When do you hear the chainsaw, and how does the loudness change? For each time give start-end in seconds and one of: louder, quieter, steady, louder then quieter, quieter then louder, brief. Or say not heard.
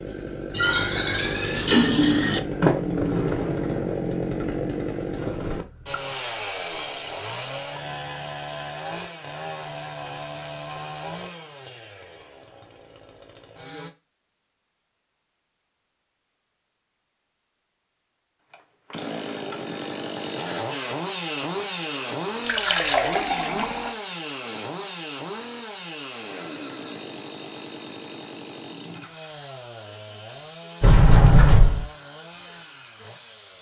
0.0-13.9 quieter
18.5-33.5 quieter.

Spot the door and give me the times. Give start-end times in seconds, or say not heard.
2.6-4.0, 30.8-31.9.